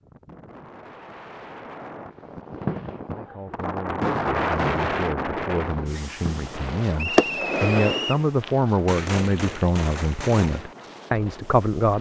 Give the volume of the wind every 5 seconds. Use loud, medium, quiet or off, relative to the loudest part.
loud, loud, quiet.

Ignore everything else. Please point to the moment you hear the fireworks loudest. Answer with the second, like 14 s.
7 s.